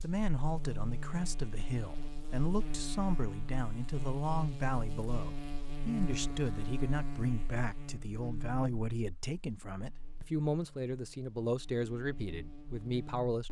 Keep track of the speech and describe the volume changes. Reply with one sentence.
The loudness of the speech stays about the same.